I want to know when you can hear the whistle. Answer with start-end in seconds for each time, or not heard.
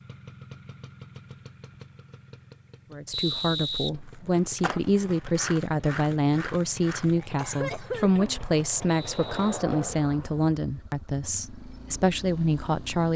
3.1-3.9, 8.8-9.7.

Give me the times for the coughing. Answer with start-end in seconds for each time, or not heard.
7.0-8.4.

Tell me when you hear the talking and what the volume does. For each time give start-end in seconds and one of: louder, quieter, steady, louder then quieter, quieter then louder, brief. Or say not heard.
2.9-13.1 steady.